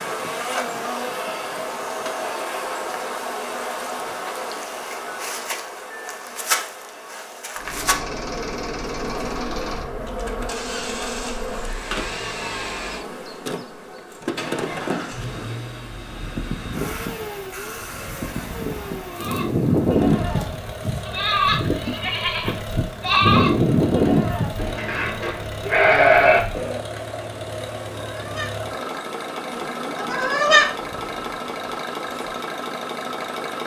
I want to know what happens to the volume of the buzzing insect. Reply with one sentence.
The loudness of the buzzing insect goes down.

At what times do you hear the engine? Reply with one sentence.
The engine can be heard from 7.5 to 33.6 s.